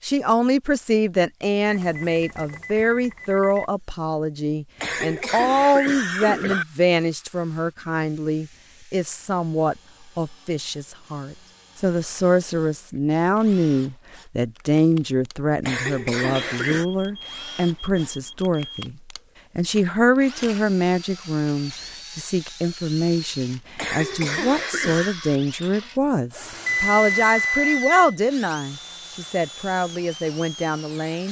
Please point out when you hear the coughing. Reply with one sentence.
The coughing can be heard from 4.8 to 6.7 s, from 15.6 to 16.9 s and from 23.8 to 25.1 s.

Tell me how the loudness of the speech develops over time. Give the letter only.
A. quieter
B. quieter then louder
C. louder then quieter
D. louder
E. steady
E.